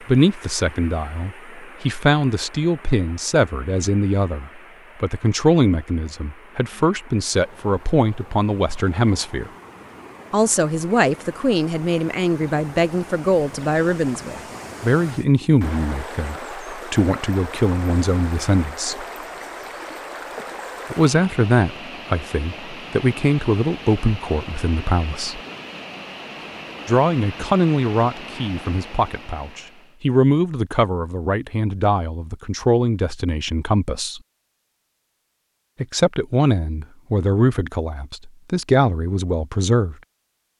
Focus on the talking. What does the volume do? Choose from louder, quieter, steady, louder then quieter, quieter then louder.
steady.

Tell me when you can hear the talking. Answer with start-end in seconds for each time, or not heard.
0.1-9.5, 10.3-19.1, 20.9-25.4, 26.9-34.2, 35.8-40.0.